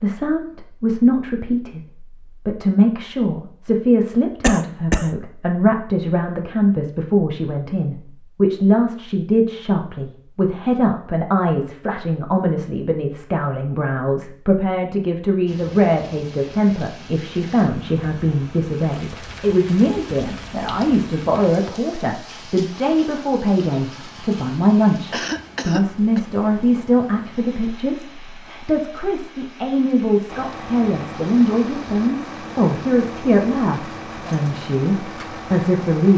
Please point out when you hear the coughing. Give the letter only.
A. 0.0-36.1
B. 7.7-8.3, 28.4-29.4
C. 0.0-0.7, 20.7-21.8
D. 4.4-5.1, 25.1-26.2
D.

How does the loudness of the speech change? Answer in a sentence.
The loudness of the speech stays about the same.